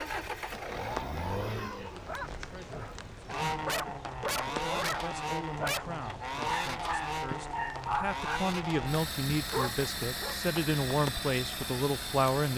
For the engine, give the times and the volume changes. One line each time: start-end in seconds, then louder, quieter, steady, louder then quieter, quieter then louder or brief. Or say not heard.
0.0-12.5 steady.